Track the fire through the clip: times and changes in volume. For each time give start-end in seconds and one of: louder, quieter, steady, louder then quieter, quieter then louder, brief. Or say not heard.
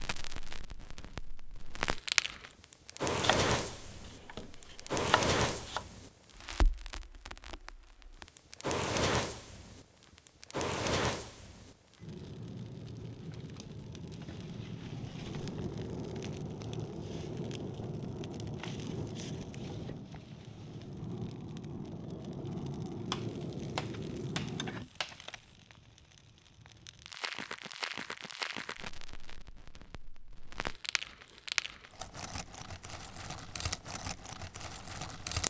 0.0-35.4 quieter.